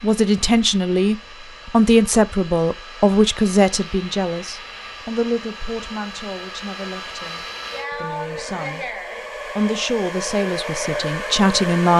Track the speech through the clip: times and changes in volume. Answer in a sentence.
You can hear the speech from 0.0 to 8.9 s, getting quieter; and briefly from 9.6 to 11.9 s.